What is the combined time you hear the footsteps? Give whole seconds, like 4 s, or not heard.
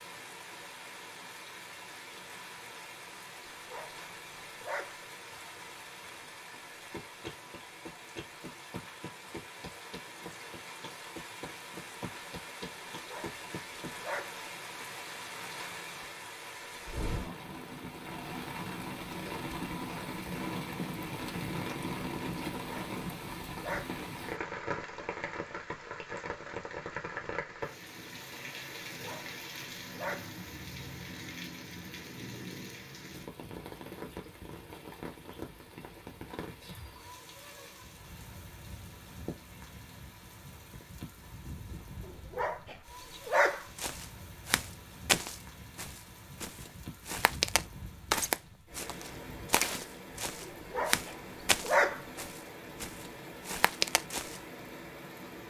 11 s.